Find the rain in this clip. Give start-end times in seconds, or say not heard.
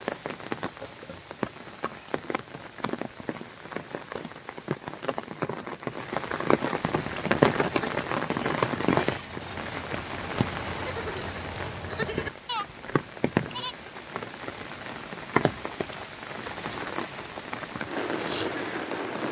0.0-19.2.